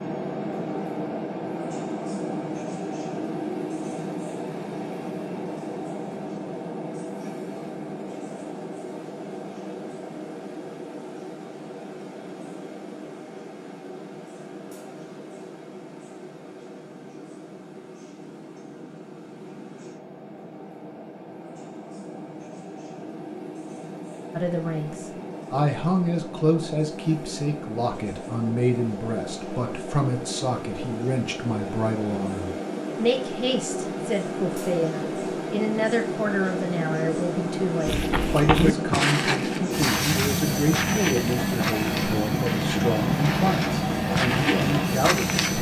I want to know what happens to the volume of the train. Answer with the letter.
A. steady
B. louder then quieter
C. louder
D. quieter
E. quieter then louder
E.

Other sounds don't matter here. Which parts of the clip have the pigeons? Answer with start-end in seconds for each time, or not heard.
not heard.